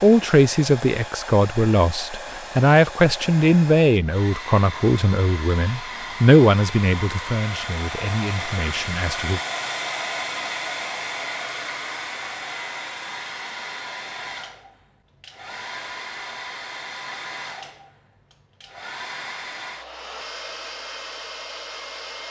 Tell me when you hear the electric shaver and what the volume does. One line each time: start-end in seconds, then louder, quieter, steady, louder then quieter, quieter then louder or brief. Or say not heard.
not heard.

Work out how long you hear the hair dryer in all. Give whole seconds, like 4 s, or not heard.
22 s.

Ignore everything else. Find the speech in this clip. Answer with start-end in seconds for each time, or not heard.
0.0-9.4.